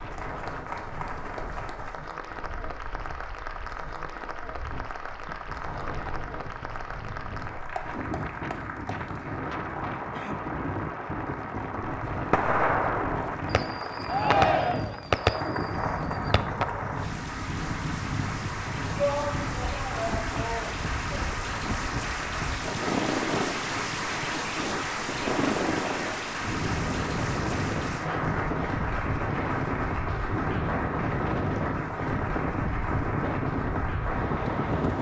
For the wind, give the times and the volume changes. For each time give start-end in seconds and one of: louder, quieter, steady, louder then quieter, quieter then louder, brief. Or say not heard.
0.0-34.9 louder.